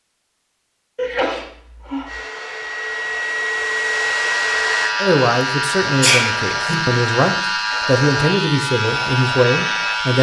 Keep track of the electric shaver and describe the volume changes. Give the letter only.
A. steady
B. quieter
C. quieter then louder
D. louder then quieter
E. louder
A.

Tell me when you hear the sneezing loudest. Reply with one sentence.
The volume of the sneezing peaks at 6 seconds.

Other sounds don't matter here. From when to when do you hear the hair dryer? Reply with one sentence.
You can hear the hair dryer from 2.0 to 5.0 s.